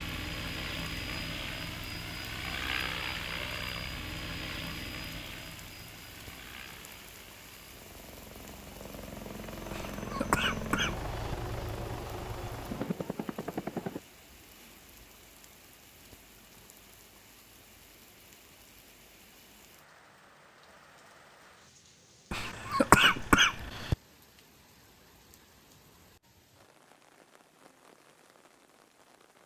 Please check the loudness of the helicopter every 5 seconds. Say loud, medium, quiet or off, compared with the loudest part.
loud, medium, loud, off, off, off.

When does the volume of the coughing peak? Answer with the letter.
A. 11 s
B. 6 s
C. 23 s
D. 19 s
C.